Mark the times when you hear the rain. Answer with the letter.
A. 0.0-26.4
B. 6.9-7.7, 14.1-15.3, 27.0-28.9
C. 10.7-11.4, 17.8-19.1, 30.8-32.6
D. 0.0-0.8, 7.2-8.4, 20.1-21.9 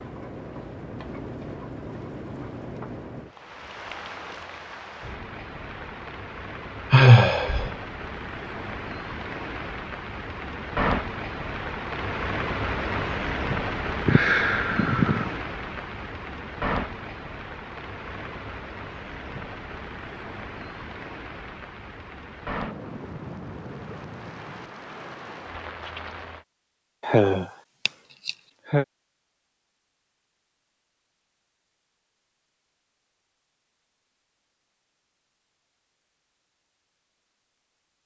A.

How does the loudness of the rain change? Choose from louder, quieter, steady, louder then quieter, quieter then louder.
louder then quieter.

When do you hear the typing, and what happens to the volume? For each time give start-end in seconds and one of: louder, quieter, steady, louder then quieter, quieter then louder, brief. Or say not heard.
not heard.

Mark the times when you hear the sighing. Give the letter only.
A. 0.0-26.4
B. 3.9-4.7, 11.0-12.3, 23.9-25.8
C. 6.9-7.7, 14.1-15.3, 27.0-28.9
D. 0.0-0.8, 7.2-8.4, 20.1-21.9
C.